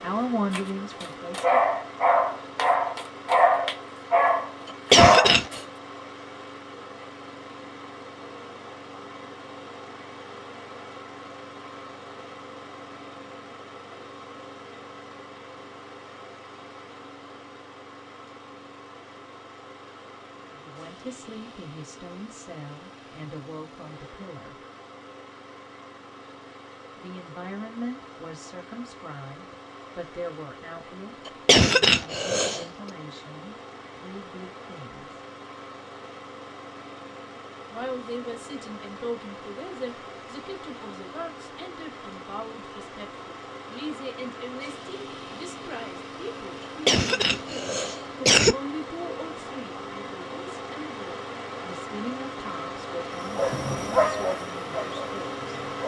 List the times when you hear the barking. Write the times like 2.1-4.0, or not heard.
0.5-5.5, 53.1-55.8.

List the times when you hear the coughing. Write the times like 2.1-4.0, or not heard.
4.7-5.6, 31.2-32.6, 46.9-48.5.